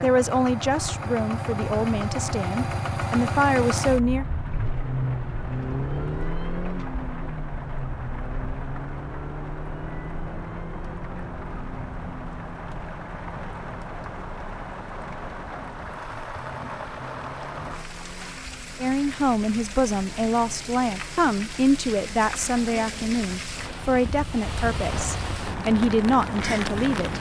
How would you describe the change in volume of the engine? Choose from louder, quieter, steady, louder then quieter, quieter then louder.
quieter.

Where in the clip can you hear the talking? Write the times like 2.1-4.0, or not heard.
0.0-4.2, 18.8-27.1.